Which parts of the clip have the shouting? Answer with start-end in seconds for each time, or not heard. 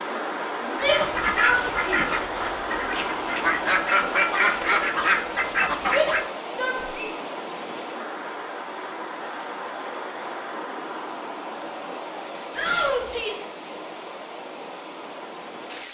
0.6-2.0, 5.9-7.1, 12.5-13.5.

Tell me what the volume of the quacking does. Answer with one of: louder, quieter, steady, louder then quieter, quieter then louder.
quieter then louder.